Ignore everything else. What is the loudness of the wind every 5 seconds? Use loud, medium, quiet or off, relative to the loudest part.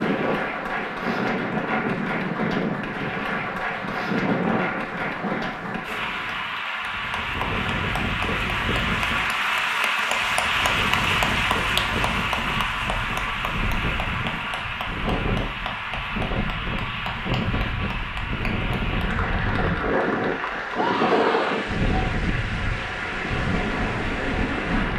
loud, medium, medium, loud, loud.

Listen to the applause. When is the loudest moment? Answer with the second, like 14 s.
11 s.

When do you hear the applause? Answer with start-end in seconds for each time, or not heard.
0.0-24.9.